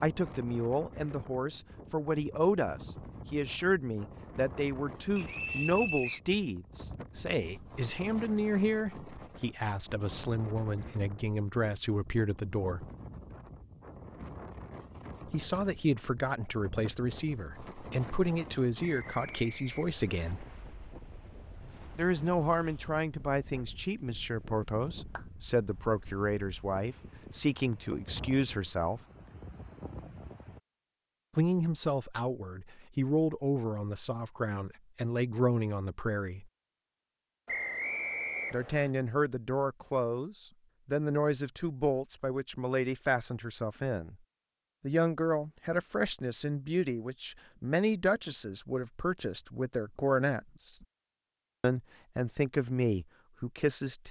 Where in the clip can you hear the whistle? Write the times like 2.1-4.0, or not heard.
5.2-6.2, 18.8-20.4, 37.5-38.9.